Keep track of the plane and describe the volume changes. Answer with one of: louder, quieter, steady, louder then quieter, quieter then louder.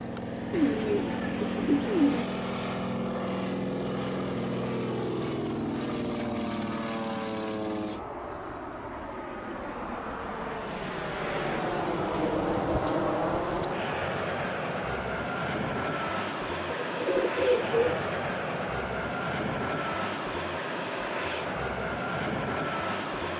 steady.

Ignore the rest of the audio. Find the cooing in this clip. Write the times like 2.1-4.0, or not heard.
0.5-2.2, 11.7-13.7, 16.9-18.1.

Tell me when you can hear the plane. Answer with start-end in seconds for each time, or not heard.
0.0-23.3.